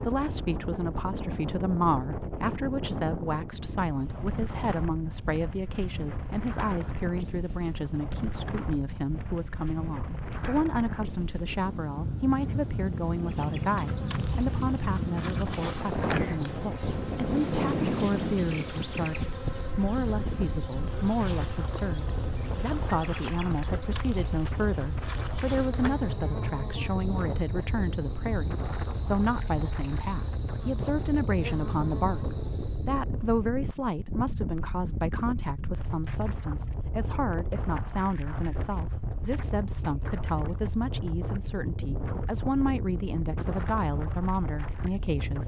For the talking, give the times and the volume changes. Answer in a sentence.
You can hear the talking from 0.0 to 45.4 s, at a steady volume.